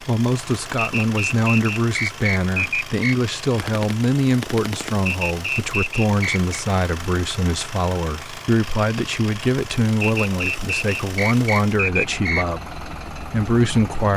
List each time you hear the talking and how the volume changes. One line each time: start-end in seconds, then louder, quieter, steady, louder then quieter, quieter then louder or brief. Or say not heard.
0.0-14.1 steady.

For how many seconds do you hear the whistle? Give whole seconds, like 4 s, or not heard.
6 s.